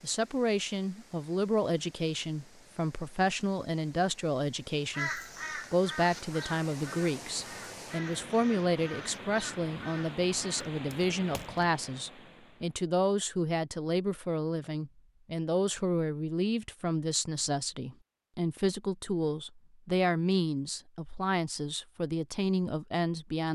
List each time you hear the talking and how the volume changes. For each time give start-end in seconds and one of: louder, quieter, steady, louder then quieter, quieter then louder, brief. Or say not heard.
0.0-23.4 steady.